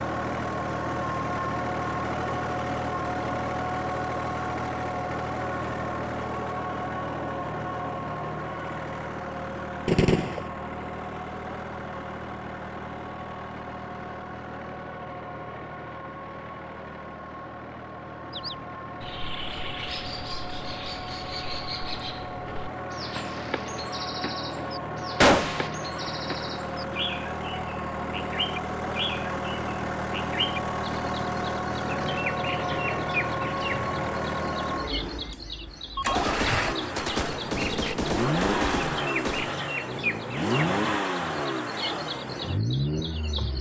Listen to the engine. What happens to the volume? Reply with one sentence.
The volume of the engine goes down, then up.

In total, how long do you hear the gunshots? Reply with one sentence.
You can hear the gunshots for 5 seconds altogether.